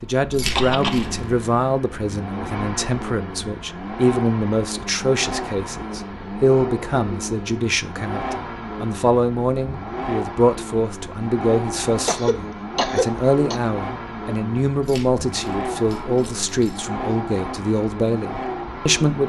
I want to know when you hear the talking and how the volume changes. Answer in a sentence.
You can hear the talking from 0.0 to 19.2 s, at a steady volume.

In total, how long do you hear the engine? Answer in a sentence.
The engine can be heard for 19 seconds in total.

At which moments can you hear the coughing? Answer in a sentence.
You can hear the coughing from 0.3 to 1.1 s and from 12.1 to 13.6 s.